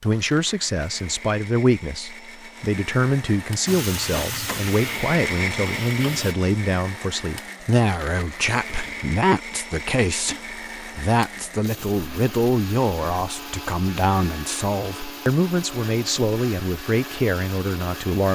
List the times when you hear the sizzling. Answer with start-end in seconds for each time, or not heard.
3.6-6.3.